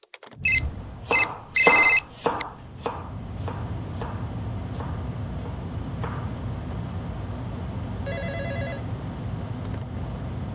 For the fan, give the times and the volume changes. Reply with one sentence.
You can hear the fan from 0.0 to 10.4 s, getting louder.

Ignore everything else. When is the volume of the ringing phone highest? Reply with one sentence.
The loudest moment of the ringing phone is at 2 seconds.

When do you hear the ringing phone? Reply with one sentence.
You can hear the ringing phone from 0.5 to 2.5 s and from 8.1 to 8.8 s.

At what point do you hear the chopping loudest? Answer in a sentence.
The loudest moment of the chopping is at 2 seconds.